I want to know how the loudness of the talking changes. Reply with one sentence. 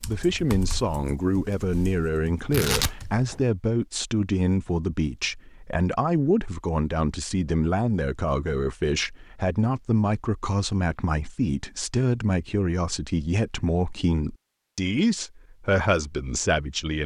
The loudness of the talking stays about the same.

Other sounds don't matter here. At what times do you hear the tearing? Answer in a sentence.
You can hear the tearing from 2.5 to 3.4 s.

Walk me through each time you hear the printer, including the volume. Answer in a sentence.
The printer can't be heard in this clip.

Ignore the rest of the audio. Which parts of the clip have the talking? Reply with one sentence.
The talking can be heard from 0.0 to 17.0 s.